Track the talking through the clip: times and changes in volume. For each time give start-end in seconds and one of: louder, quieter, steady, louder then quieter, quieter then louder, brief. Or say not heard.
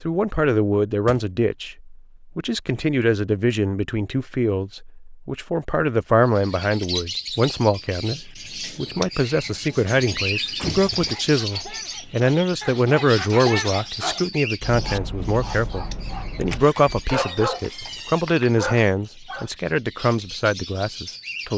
0.0-21.5 steady.